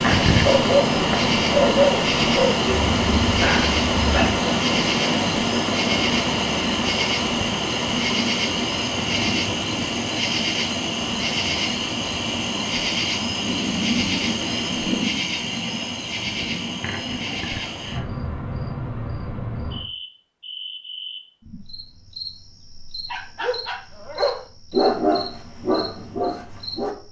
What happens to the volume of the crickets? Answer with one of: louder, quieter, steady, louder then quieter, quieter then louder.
quieter.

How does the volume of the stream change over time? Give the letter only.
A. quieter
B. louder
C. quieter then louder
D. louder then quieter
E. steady
A.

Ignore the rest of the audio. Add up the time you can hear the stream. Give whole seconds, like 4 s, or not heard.
15 s.